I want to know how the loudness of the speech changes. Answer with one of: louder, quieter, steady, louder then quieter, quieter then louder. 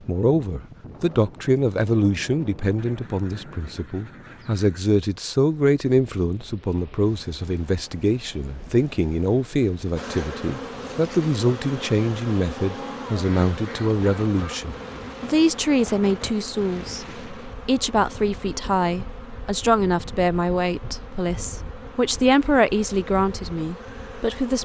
steady.